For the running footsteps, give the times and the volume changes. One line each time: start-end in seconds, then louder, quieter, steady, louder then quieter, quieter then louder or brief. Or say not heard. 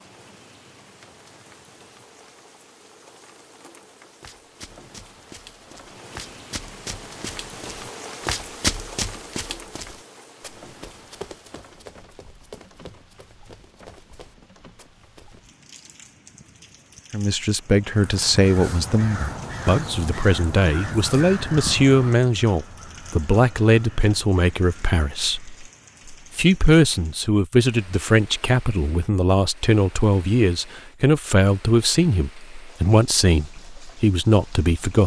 4.2-15.4 louder then quieter.